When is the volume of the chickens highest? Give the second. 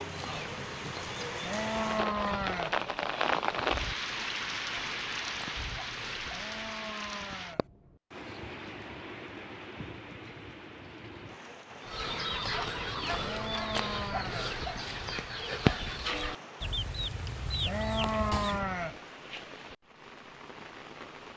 16 s.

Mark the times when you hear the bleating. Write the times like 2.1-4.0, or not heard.
1.4-2.8, 6.3-7.7, 13.2-14.6, 17.6-19.0.